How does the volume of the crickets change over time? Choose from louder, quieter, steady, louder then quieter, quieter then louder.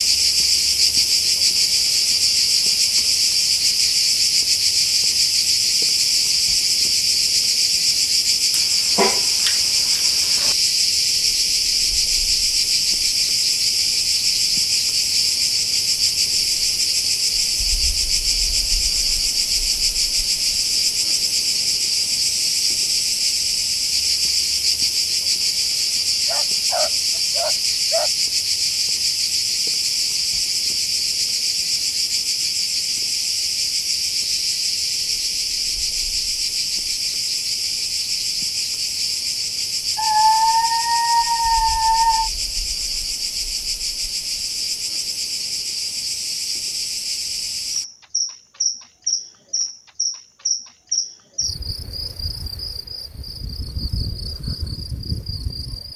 quieter.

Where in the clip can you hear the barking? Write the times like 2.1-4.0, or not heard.
8.5-10.6, 26.2-28.1, 40.0-42.3.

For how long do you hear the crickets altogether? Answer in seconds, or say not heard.
56 s.